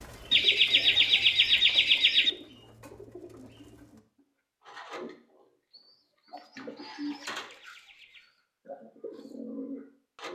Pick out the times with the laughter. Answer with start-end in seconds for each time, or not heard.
0.3-2.3, 7.0-8.3.